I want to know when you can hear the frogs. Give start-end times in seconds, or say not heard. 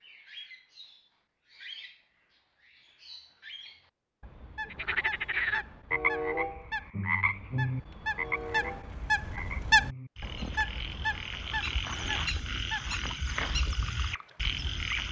4.7-15.0.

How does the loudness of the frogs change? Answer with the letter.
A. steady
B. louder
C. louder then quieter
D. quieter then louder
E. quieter
D.